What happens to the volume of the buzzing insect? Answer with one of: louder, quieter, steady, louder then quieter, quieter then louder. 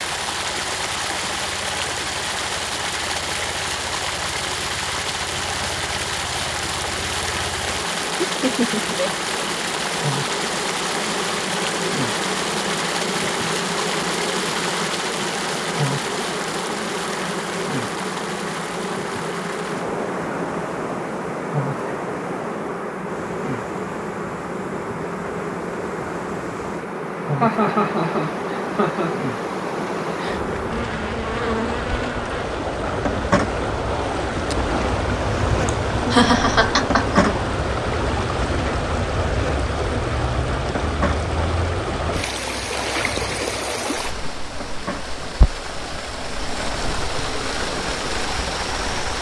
louder then quieter.